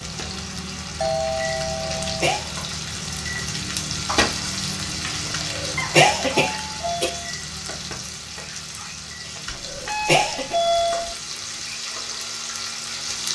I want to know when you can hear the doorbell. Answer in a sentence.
The doorbell can be heard from 1.0 to 2.1 s, from 5.8 to 7.3 s and from 9.4 to 11.2 s.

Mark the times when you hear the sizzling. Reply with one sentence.
The sizzling can be heard from 0.0 to 13.3 s.